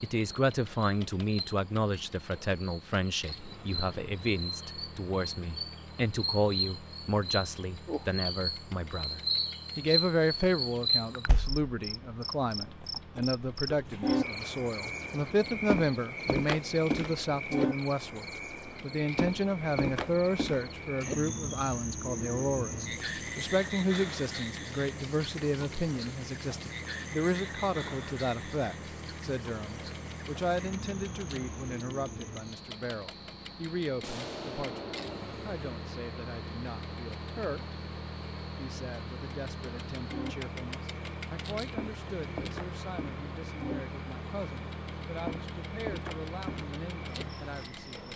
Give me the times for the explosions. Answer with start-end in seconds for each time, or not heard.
34.0-35.6.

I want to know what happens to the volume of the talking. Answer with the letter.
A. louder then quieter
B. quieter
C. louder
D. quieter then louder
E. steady
B.